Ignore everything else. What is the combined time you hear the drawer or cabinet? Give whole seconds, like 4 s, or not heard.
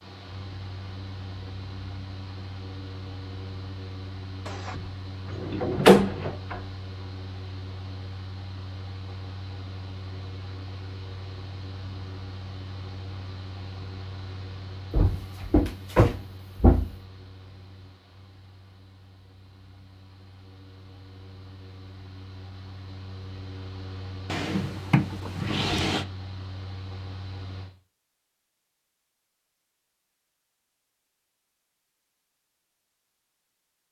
6 s.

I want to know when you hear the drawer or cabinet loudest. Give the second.
6 s.